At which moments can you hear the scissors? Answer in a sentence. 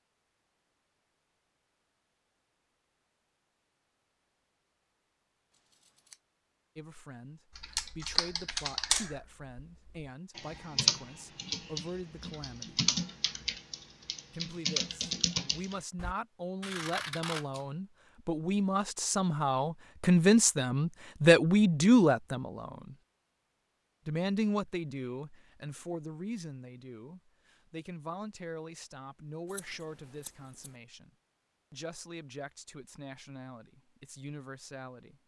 You can hear the scissors from 5.5 to 6.2 s, from 16.6 to 17.6 s and from 29.4 to 30.7 s.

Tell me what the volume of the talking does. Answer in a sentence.
The volume of the talking goes up, then down.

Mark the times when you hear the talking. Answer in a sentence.
You can hear the talking from 6.8 to 12.8 s, from 14.3 to 22.9 s, from 24.1 to 31.1 s and from 31.7 to 35.1 s.